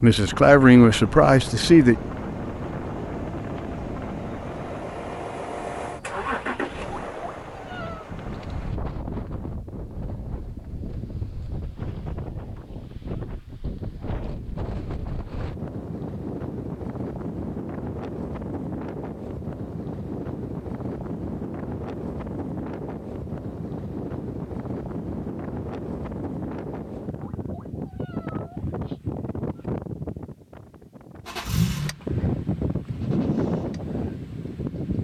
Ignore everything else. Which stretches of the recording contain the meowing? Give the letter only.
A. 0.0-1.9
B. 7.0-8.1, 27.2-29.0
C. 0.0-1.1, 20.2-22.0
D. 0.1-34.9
B.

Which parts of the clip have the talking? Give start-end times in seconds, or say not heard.
0.0-1.9.